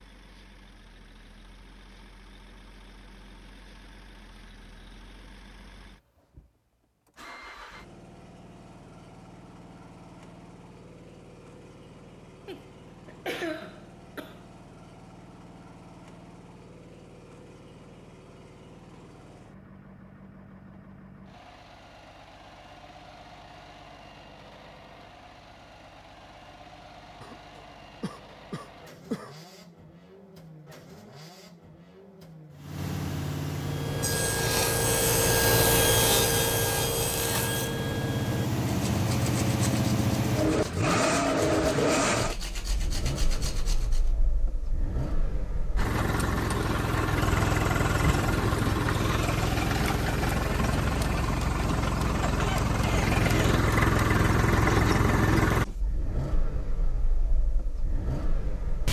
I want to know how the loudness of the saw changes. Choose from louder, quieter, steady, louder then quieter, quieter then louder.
quieter.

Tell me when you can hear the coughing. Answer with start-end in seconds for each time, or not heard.
12.4-14.4, 27.2-29.4, 52.2-53.5.